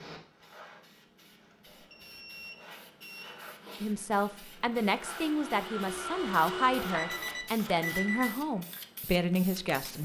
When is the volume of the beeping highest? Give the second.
8 s.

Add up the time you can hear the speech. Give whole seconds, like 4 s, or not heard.
6 s.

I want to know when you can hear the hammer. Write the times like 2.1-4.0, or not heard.
not heard.